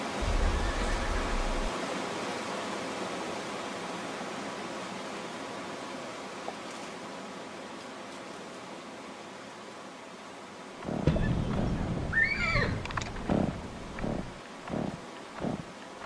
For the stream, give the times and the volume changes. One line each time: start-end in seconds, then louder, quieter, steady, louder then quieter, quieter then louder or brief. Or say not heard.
0.0-16.0 quieter.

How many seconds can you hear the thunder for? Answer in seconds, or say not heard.
3 s.